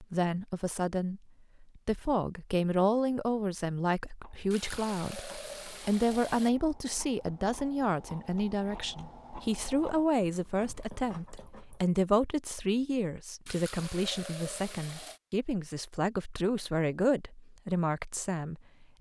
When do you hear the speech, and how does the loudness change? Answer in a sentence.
You can hear the speech from 0.0 to 18.9 s, at a steady volume.